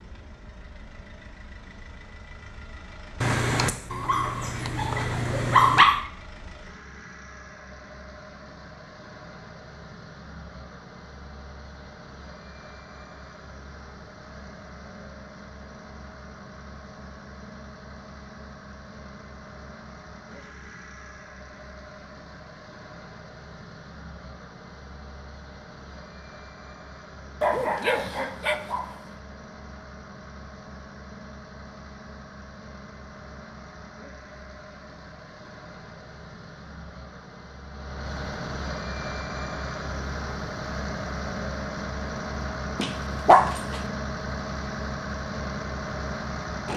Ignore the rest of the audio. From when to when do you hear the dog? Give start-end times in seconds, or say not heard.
3.2-6.0, 27.4-29.0, 42.8-43.8.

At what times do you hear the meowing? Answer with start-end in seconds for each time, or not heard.
not heard.